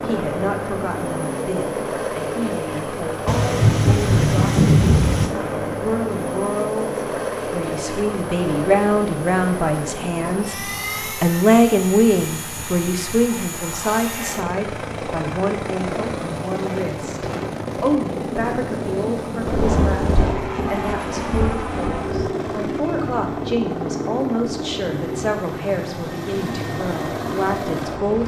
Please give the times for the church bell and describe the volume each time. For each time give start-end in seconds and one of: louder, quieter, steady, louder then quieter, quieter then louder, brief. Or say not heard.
not heard.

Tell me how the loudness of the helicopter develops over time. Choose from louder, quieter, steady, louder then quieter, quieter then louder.
steady.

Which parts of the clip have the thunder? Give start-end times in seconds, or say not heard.
3.2-5.3, 19.4-22.4.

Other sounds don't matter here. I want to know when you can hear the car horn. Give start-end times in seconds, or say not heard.
not heard.